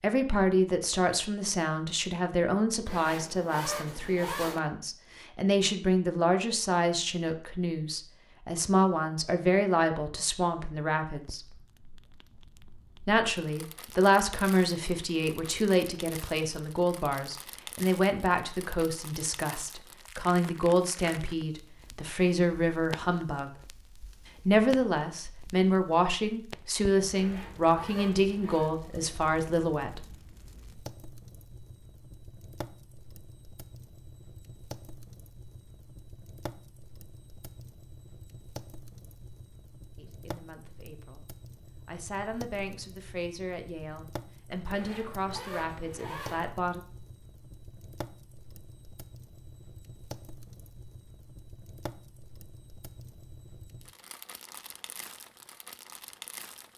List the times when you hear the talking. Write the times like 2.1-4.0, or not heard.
0.0-11.5, 13.1-23.5, 24.4-30.1, 40.0-46.8.